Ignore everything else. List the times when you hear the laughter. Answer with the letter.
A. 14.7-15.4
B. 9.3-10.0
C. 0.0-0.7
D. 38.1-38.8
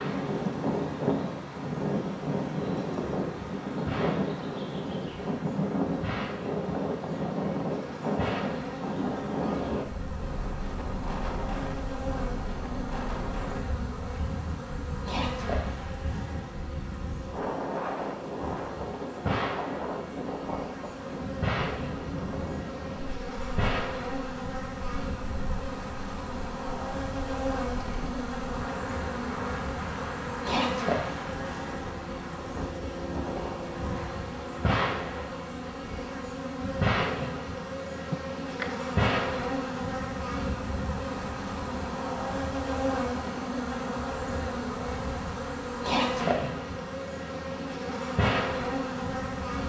D.